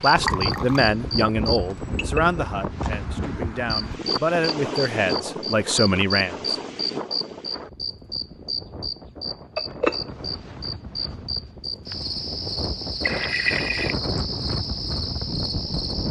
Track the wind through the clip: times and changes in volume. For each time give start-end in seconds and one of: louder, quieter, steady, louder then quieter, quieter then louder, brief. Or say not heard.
0.0-16.0 quieter then louder.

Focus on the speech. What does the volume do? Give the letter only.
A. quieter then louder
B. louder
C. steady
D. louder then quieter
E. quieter
A.